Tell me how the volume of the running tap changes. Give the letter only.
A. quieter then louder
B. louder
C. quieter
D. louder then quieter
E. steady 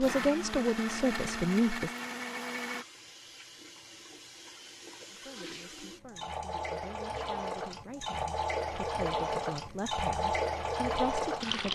B.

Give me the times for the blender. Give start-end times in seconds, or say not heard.
0.0-2.9.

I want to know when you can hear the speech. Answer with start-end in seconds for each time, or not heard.
0.0-1.9, 5.1-11.7.